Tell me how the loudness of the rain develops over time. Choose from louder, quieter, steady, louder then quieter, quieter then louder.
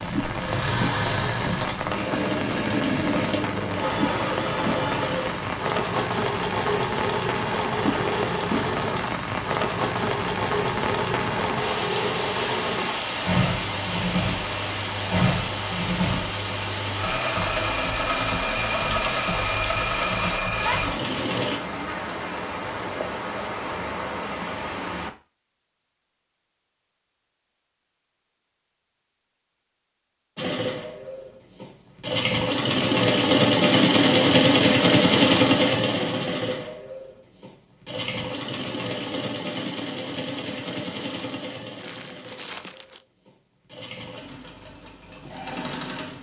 steady.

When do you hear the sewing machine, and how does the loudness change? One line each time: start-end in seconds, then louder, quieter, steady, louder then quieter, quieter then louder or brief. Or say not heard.
0.0-21.6 steady
30.4-46.1 quieter.